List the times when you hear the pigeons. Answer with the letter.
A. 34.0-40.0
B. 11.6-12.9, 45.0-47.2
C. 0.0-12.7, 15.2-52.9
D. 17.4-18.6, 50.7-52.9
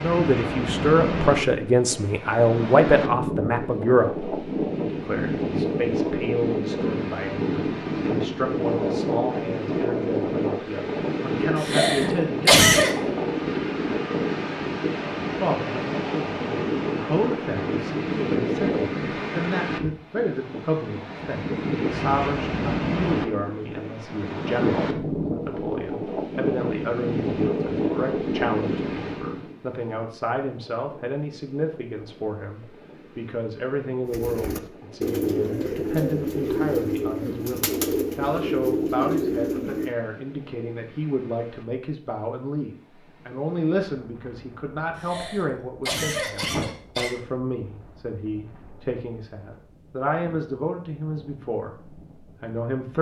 A.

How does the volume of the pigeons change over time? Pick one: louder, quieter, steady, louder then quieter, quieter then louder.
steady.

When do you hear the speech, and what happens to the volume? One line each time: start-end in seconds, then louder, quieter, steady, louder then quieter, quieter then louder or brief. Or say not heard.
0.0-12.7 quieter
15.2-52.9 steady.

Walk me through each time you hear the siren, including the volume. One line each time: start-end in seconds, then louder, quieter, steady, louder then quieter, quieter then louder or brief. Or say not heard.
not heard.